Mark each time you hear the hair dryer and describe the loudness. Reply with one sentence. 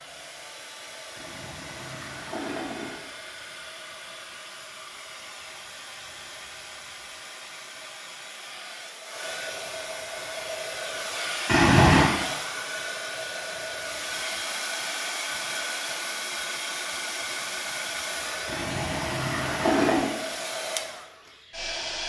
You can hear the hair dryer from 0.0 to 22.0 s, getting louder.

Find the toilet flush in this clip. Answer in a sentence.
The toilet flush can be heard from 1.1 to 3.0 s, from 11.4 to 12.1 s and from 18.4 to 20.1 s.